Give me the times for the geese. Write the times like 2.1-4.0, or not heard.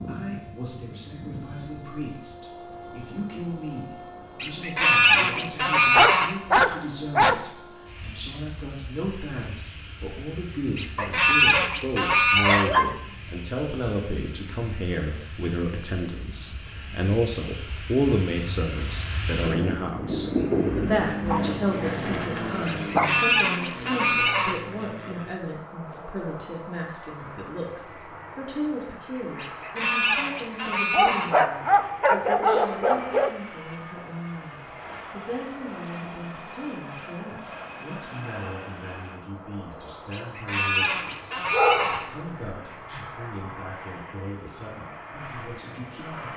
4.4-6.3, 10.8-12.7, 22.6-24.6, 29.4-31.4, 40.1-42.0.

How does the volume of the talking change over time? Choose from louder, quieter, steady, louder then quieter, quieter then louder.
louder then quieter.